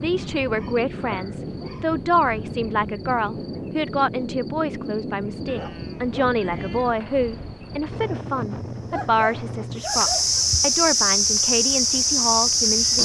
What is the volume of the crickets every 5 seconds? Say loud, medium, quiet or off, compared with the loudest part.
quiet, quiet, loud.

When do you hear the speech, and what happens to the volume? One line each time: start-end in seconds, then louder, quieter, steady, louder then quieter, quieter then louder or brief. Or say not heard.
0.0-13.0 steady.